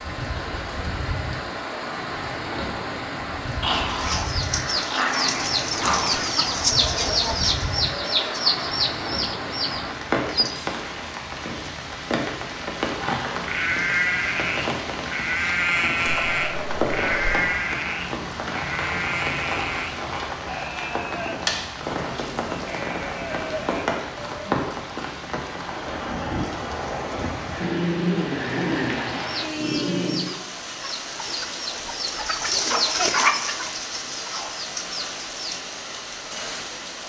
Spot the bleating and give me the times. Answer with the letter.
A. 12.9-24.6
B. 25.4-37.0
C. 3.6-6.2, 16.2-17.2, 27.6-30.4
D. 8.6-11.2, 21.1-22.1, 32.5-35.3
A.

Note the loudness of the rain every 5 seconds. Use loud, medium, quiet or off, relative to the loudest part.
loud, loud, loud, loud, loud, loud, medium, medium.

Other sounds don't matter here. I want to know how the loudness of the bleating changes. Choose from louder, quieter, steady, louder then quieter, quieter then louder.
quieter.